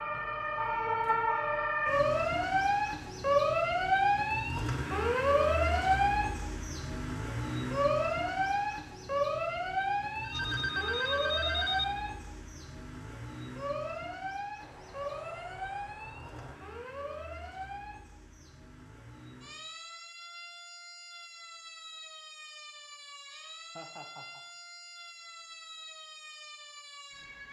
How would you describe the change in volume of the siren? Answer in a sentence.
The volume of the siren goes down.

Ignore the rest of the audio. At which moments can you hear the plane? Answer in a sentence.
You can hear the plane from 14.6 to 16.6 s.